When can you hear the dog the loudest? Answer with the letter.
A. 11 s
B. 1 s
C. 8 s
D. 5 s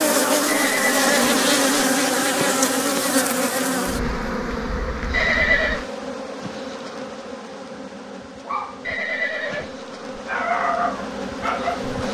A.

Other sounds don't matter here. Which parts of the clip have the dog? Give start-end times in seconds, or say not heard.
8.4-12.0.